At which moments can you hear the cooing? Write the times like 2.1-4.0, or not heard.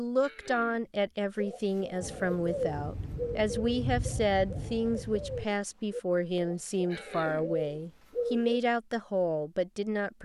1.4-8.6.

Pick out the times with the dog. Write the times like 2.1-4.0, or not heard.
not heard.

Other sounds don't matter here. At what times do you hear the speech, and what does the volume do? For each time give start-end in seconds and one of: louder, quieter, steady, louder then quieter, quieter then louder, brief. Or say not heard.
0.0-10.2 steady.